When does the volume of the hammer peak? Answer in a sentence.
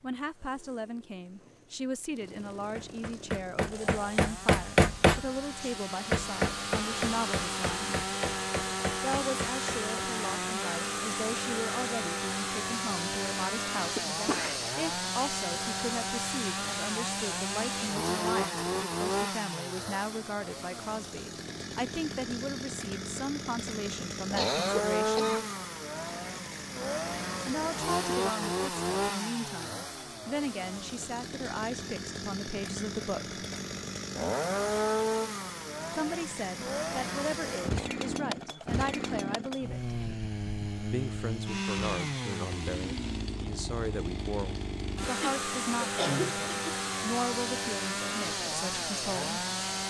The loudest moment of the hammer is at 5 seconds.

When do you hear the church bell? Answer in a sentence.
The church bell can't be heard in this clip.